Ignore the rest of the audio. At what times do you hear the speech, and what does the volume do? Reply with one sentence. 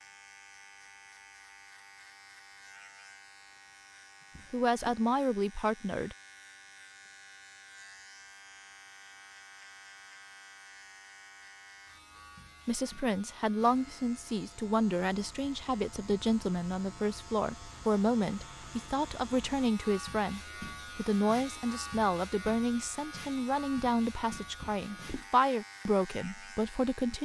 You can hear the speech briefly from 4.5 to 6.2 s; and from 12.7 to 27.1 s, at a steady volume.